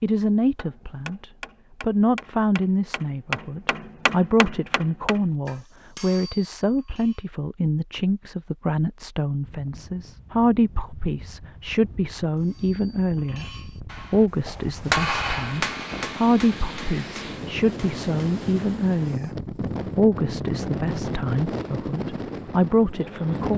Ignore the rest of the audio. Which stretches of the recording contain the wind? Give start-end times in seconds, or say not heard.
9.4-23.5.